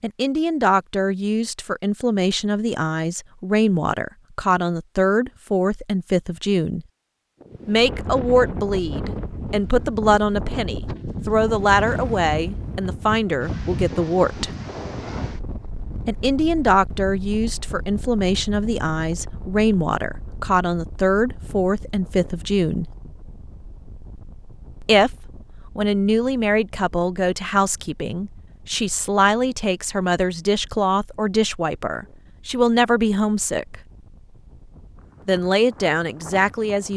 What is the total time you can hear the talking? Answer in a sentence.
You can hear the talking for 31 seconds altogether.